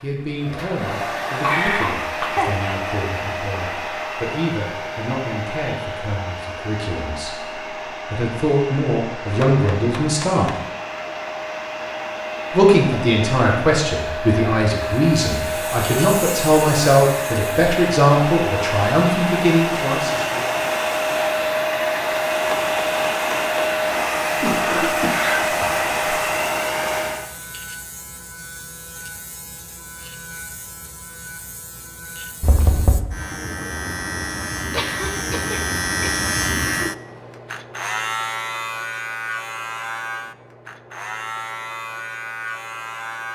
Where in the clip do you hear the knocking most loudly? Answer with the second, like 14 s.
33 s.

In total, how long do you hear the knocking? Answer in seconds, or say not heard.
3 s.